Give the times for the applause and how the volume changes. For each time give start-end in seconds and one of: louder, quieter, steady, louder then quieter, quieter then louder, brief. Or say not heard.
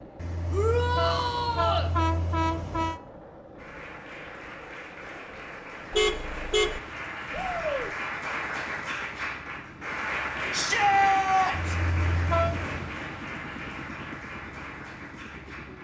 3.5-15.7 louder then quieter.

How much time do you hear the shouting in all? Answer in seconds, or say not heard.
3 s.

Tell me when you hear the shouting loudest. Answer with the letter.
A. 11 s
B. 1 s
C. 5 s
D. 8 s
A.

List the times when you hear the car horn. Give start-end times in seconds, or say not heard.
0.1-3.0, 5.9-6.8, 11.5-12.9.